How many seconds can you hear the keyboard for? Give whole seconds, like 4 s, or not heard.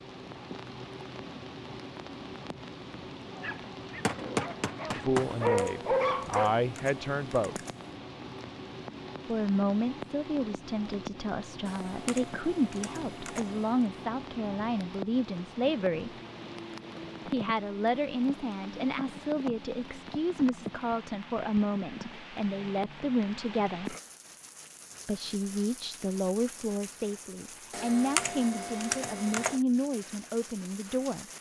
7 s.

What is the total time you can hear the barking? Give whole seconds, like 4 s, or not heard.
3 s.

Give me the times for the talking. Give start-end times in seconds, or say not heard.
4.9-7.7, 9.2-16.1, 17.2-23.9, 25.1-31.2.